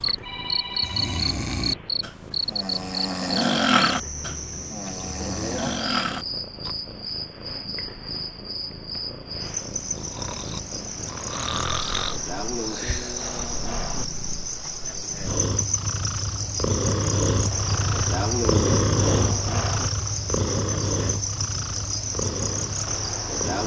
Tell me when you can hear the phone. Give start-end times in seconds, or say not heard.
0.2-1.3.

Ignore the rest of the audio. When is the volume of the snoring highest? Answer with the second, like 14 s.
4 s.